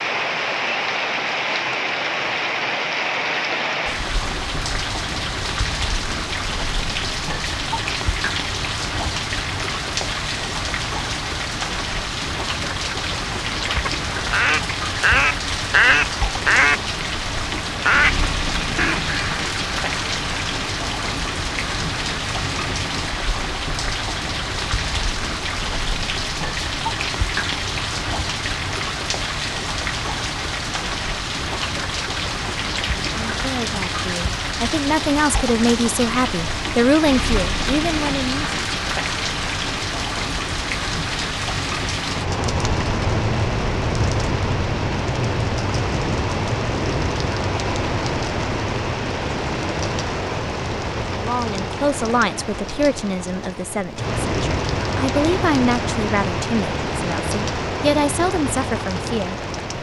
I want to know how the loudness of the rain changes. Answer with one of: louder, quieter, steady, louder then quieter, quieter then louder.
steady.